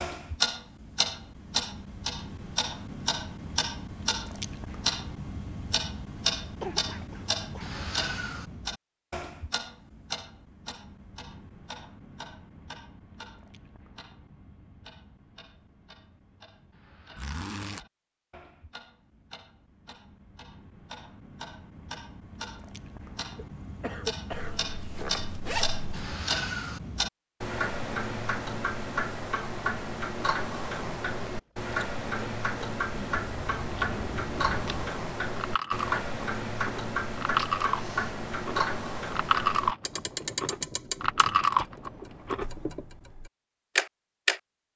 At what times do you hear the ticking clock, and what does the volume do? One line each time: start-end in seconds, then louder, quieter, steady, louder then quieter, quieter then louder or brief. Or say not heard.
0.0-44.7 quieter then louder.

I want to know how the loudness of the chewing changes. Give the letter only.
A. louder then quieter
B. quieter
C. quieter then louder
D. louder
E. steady
D.